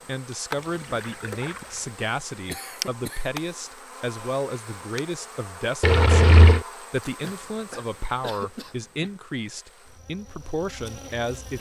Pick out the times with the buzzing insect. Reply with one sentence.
The buzzing insect can be heard from 0.0 to 11.5 s.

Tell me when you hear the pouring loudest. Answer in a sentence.
The volume of the pouring peaks at 6 seconds.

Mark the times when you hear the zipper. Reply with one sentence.
You can't hear the zipper here.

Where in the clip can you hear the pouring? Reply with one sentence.
You can hear the pouring from 0.8 to 1.9 s and from 5.8 to 6.7 s.